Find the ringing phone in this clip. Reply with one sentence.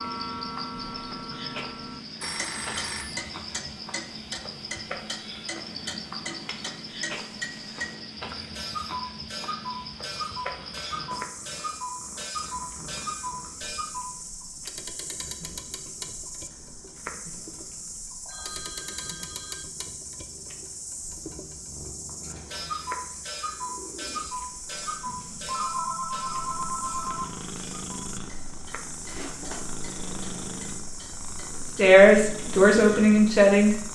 You can hear the ringing phone from 2.2 to 3.2 s, from 18.2 to 19.6 s and from 25.1 to 27.4 s.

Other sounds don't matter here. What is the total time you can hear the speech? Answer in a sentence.
You can hear the speech for 2 seconds altogether.